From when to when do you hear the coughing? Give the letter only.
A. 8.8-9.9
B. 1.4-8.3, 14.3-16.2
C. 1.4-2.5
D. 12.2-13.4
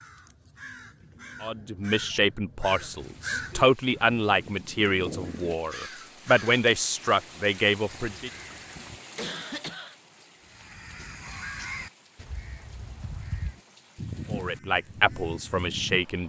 A.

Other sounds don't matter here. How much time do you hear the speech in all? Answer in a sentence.
You can hear the speech for 9 seconds altogether.